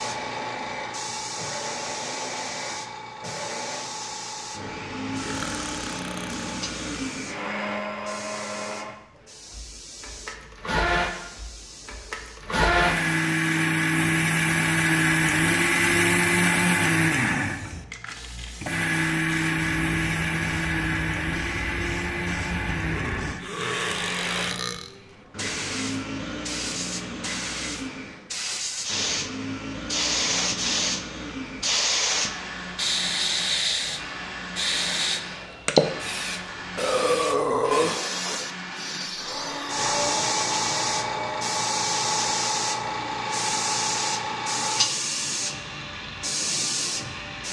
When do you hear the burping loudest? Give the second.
38 s.